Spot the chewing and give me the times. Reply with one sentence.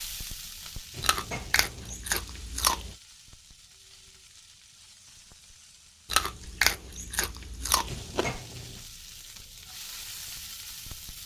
The chewing can be heard from 1.0 to 3.0 s and from 6.1 to 8.3 s.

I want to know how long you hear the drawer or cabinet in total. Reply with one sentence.
You can hear the drawer or cabinet for 2 seconds altogether.